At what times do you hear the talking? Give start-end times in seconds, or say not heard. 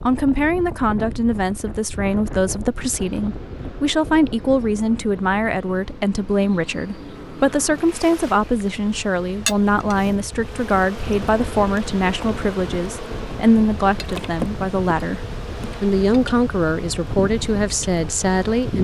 0.1-18.7.